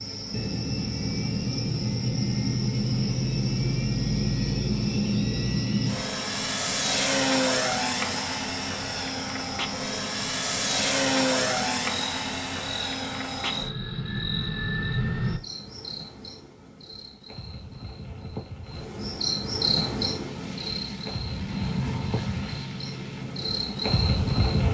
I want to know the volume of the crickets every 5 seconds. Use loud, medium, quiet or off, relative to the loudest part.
medium, medium, medium, loud, loud.